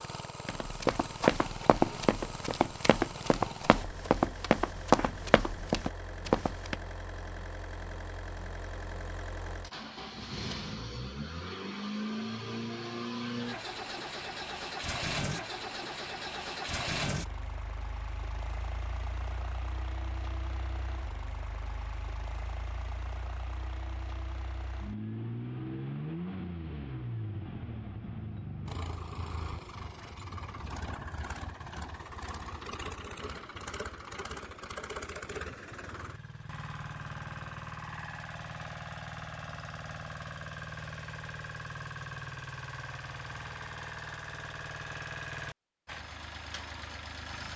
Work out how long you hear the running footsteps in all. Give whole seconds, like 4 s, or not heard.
6 s.